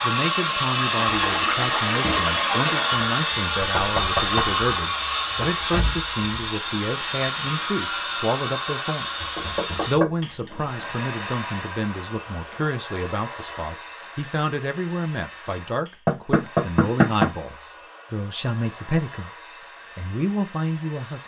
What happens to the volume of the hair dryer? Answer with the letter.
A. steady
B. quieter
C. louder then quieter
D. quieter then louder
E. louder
B.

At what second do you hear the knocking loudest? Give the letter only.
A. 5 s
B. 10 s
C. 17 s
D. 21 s
C.